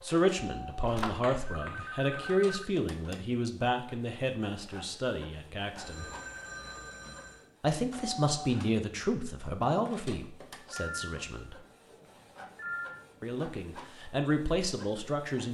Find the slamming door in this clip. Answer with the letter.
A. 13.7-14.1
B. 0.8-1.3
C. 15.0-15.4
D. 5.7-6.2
B.